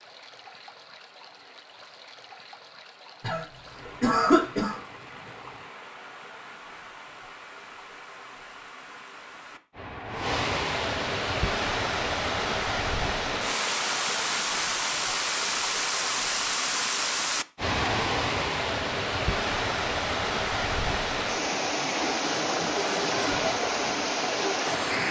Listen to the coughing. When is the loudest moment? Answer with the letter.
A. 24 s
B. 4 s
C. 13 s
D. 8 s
B.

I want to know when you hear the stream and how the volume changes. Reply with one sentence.
You can hear the stream from 0.0 to 25.0 s, getting louder.